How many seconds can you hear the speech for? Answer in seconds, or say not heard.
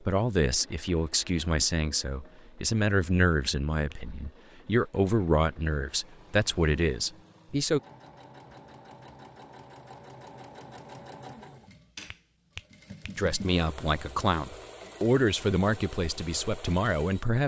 12 s.